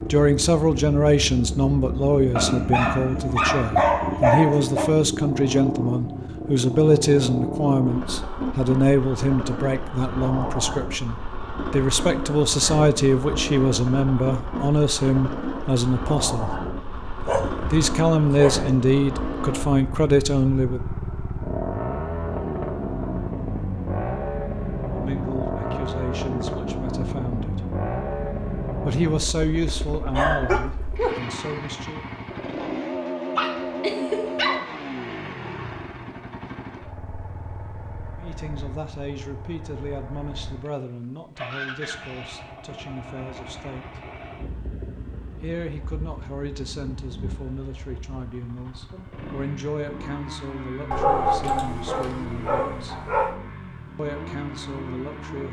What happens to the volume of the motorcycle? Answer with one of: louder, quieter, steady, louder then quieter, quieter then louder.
quieter.